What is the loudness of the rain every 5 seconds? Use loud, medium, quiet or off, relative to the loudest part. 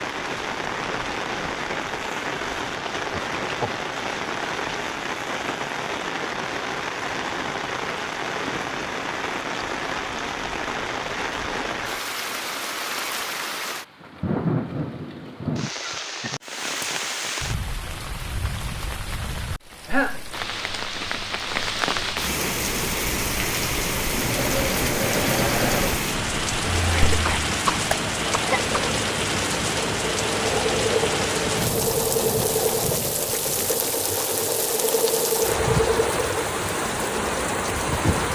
loud, loud, loud, medium, loud, loud, loud, loud.